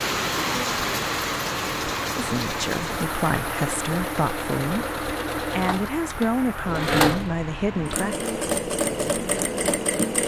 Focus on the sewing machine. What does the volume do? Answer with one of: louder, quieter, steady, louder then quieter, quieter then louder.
louder.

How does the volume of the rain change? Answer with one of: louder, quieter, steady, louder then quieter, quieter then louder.
quieter.